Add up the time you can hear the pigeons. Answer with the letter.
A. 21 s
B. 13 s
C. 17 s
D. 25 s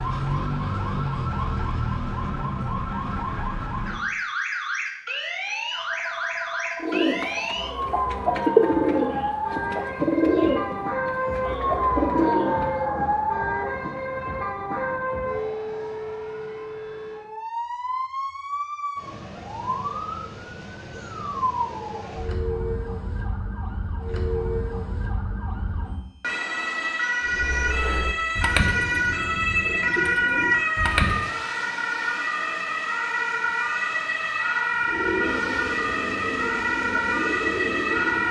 B.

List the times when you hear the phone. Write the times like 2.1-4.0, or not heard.
5.8-7.8.